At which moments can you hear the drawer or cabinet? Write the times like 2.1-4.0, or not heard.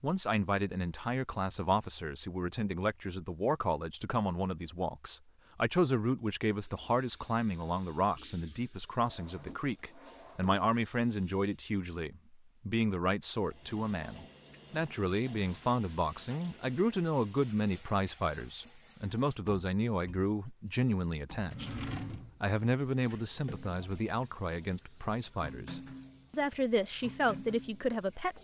9.0-10.6, 21.4-22.4.